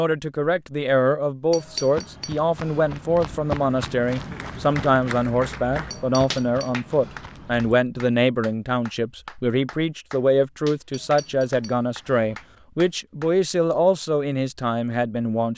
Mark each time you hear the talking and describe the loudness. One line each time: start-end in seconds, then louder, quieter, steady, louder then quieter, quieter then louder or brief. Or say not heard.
0.0-15.5 steady.